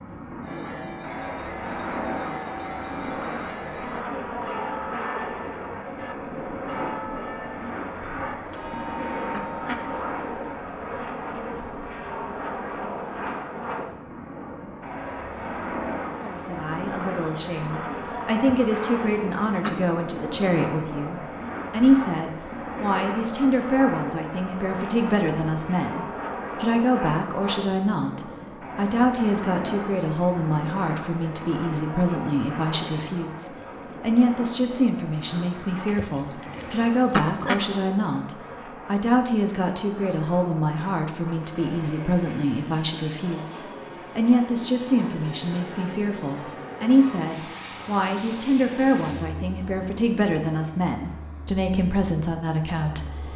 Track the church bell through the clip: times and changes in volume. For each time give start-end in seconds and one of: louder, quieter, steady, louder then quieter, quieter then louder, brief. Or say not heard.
0.4-10.6 steady.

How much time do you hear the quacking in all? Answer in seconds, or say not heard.
5 s.